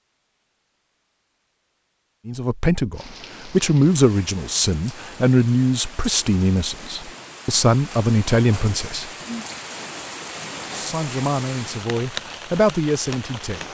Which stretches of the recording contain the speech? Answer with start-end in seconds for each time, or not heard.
2.2-9.1, 10.7-13.6.